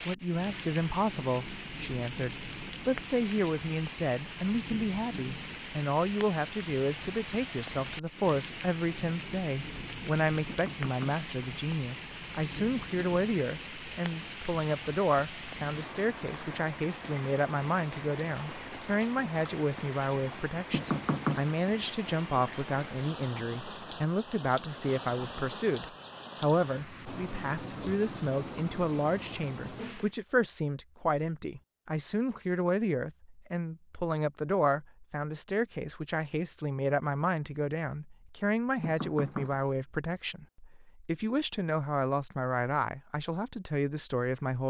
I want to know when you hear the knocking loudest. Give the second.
21 s.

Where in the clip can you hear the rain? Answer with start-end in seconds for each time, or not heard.
0.0-30.1.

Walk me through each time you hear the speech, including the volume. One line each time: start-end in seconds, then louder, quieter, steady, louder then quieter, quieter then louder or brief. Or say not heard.
0.1-44.6 steady.